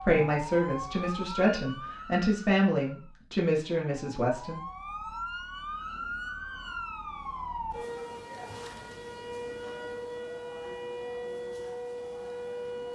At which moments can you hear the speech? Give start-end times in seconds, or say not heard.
0.0-4.6.